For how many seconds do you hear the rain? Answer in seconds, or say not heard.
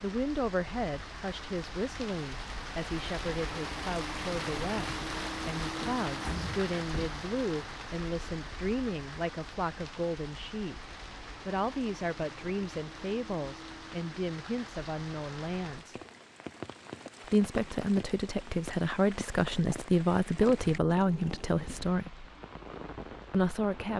24 s.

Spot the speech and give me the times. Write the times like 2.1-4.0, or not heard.
0.0-10.8, 11.4-15.9, 17.2-22.2, 23.3-23.9.